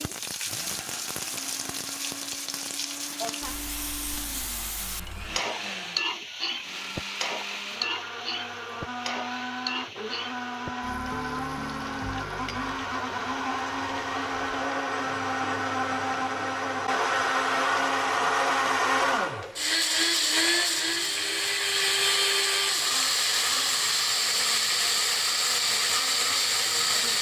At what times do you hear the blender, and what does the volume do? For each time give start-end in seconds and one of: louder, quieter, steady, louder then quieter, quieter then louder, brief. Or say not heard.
0.0-27.1 louder.